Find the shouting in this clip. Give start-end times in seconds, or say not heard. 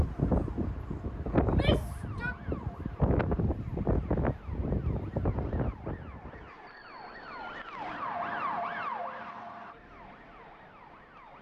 1.4-2.4.